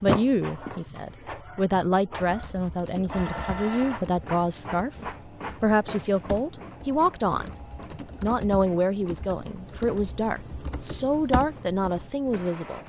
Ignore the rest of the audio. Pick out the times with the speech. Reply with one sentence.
You can hear the speech from 0.0 to 4.9 s, from 5.6 to 7.5 s and from 8.2 to 12.8 s.